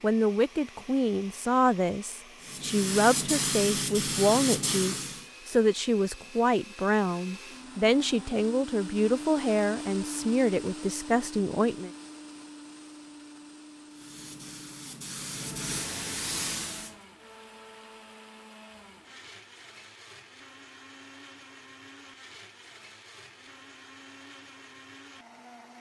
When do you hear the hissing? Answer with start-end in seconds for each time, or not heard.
2.4-5.2, 13.9-16.9.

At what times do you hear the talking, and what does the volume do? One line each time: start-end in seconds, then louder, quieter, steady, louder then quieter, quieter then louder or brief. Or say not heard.
0.0-11.9 steady.